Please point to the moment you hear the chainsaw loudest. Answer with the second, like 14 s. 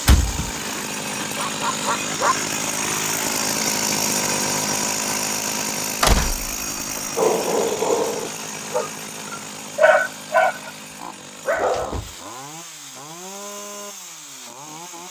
4 s.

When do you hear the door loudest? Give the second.
6 s.